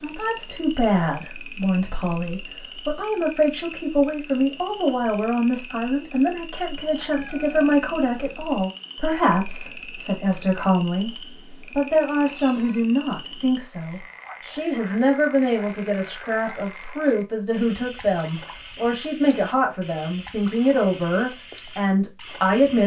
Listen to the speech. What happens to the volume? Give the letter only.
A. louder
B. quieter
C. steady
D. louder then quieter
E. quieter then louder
C.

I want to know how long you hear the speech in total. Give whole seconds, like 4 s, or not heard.
23 s.